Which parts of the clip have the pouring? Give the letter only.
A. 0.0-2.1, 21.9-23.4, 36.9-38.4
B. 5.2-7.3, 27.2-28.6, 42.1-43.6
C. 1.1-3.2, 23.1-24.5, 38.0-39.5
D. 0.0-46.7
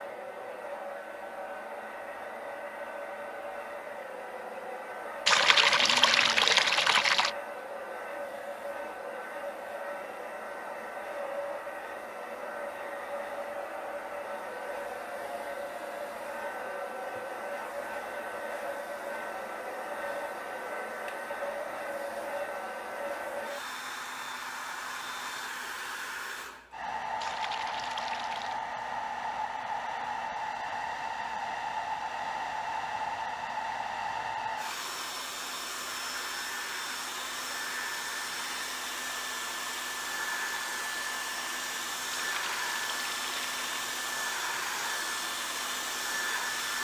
B.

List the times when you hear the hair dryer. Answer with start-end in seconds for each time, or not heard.
0.0-46.7.